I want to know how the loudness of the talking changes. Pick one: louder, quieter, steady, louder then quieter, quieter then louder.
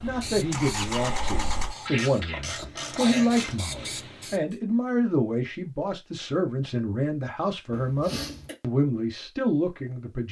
steady.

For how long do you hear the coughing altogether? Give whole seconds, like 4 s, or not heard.
2 s.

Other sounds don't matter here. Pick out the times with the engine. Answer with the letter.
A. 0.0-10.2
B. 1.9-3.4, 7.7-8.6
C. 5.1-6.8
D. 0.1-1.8
D.